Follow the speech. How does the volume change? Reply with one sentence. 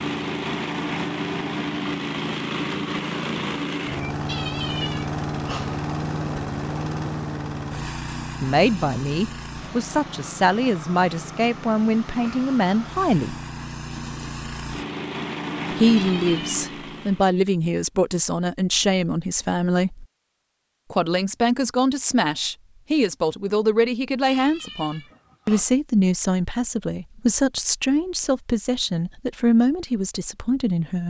The loudness of the speech stays about the same.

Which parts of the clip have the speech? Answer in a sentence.
You can hear the speech from 8.4 to 13.3 s, from 15.7 to 20.1 s and from 20.9 to 31.0 s.